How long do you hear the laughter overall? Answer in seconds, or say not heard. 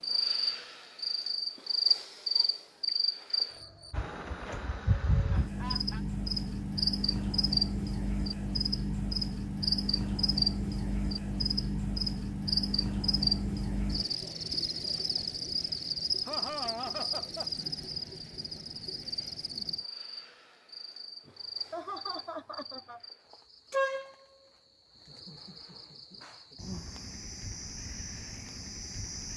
4 s.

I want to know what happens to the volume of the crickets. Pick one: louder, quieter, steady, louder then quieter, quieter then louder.
quieter.